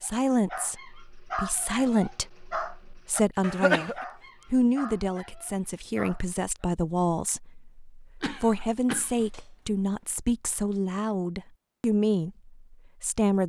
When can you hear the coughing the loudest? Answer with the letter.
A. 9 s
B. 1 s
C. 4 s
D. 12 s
C.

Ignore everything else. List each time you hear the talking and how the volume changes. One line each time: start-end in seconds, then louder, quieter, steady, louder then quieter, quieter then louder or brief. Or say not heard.
0.0-13.4 steady.